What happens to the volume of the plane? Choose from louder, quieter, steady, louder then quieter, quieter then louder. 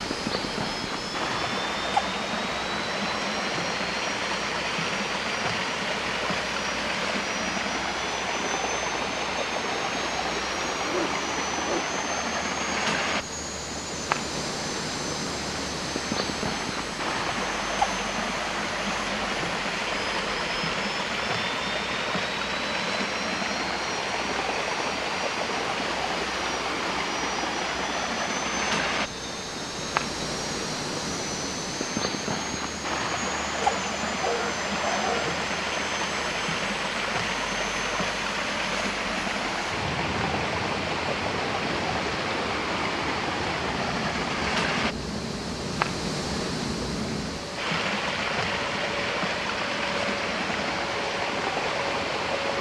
steady.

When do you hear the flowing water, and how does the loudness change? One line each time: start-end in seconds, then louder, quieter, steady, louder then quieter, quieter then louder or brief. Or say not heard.
0.0-52.5 steady.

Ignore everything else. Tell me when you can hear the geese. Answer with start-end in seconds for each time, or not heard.
not heard.